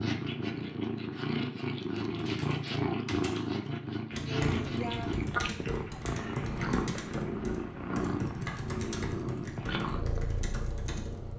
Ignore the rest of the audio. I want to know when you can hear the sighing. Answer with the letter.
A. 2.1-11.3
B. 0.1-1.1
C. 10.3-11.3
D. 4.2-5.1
D.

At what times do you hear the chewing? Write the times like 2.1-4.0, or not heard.
not heard.